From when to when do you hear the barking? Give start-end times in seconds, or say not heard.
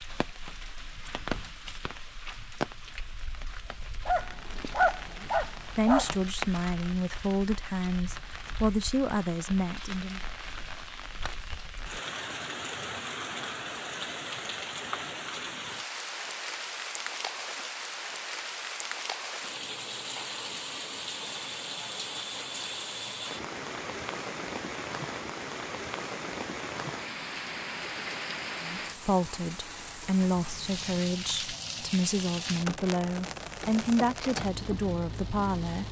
4.0-6.2.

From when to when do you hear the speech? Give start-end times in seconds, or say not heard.
5.2-10.2, 28.6-35.8.